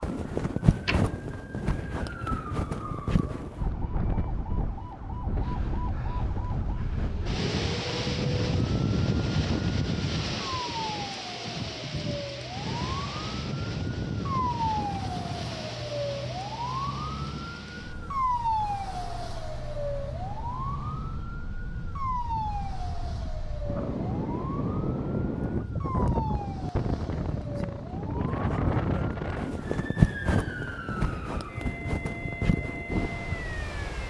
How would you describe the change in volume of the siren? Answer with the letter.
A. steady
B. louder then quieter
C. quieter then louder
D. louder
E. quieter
B.